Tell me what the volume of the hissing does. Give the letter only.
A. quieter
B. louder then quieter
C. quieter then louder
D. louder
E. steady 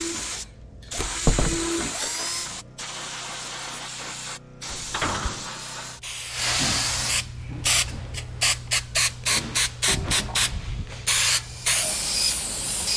D.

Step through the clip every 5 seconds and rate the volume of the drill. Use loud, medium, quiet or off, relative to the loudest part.
loud, off, loud.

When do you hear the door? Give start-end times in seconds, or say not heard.
0.9-1.6, 4.7-5.5, 9.9-10.9.